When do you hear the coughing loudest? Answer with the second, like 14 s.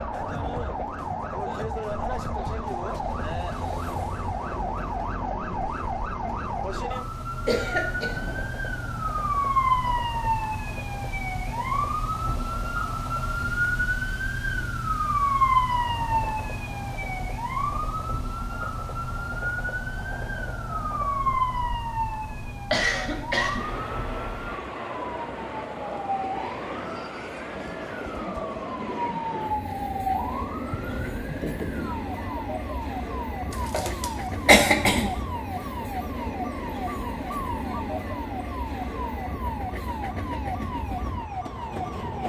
35 s.